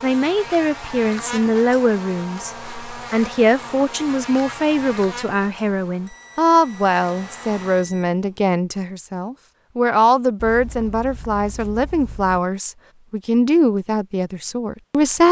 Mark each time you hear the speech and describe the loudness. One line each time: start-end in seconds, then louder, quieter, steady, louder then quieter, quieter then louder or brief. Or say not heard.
0.0-15.2 steady.